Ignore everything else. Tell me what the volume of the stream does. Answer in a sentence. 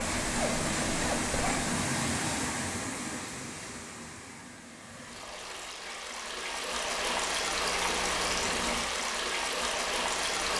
The loudness of the stream goes down, then up.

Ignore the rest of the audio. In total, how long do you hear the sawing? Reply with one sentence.
You can hear the sawing for 2 seconds altogether.